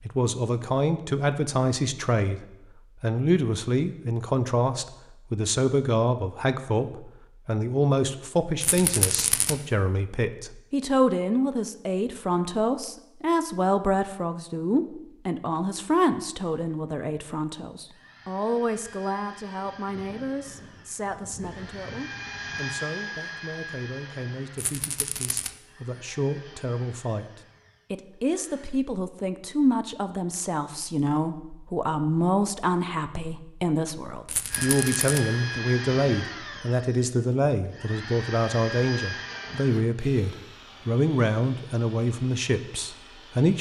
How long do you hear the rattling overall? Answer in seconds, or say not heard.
3 s.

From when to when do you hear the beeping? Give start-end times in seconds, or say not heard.
not heard.